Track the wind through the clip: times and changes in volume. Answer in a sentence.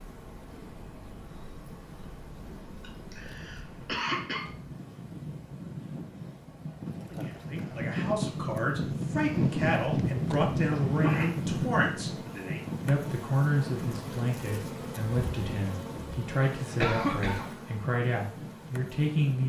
The wind can be heard from 0.0 to 19.4 s, getting louder then quieter.